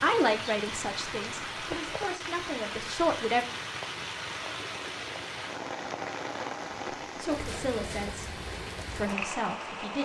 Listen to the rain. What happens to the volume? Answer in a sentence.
The loudness of the rain stays about the same.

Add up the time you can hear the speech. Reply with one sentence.
You can hear the speech for 6 seconds altogether.